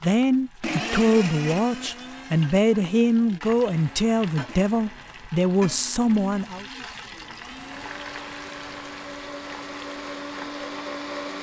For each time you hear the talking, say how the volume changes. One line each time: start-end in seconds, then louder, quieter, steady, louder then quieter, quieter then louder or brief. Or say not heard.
0.0-6.7 steady.